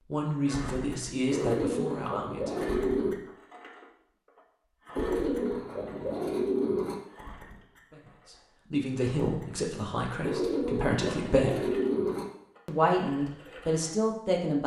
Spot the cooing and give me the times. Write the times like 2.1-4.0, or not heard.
1.3-3.1, 5.0-7.0, 10.2-12.2.